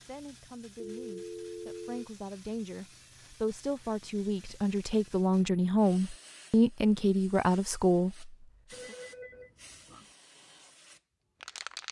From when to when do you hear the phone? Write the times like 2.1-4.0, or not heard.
0.8-2.1, 8.7-10.1.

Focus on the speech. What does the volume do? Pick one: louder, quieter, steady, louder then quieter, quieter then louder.
louder.